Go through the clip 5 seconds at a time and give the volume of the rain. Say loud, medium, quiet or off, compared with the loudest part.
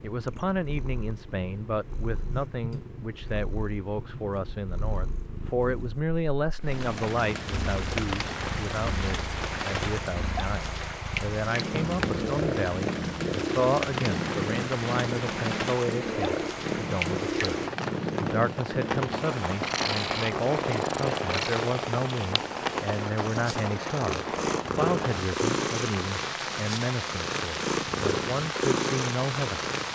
off, loud, loud, loud, loud, loud.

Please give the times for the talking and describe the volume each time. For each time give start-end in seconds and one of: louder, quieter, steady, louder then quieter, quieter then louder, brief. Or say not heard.
0.0-29.6 steady.